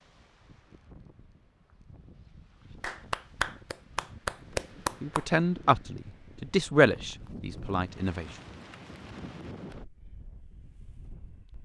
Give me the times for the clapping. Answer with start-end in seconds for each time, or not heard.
2.8-5.2.